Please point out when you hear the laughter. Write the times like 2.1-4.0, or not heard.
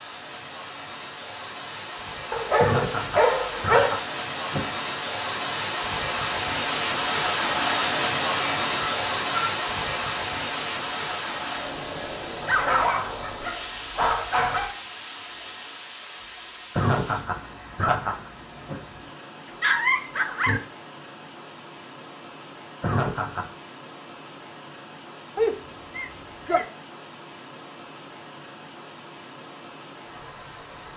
2.5-4.7, 16.8-18.8, 22.8-23.5.